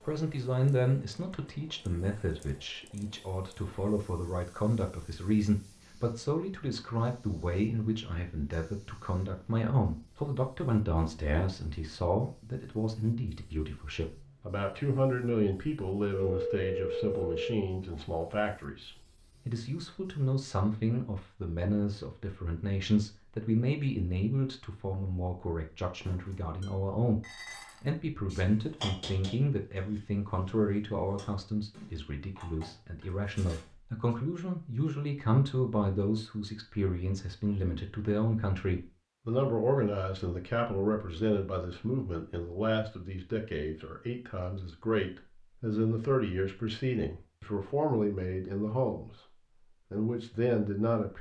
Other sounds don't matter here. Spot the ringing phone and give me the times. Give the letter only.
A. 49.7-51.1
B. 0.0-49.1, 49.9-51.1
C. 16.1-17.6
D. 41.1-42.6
C.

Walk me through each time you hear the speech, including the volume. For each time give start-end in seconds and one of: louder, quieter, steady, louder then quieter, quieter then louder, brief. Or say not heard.
0.0-49.1 steady
49.9-51.1 brief.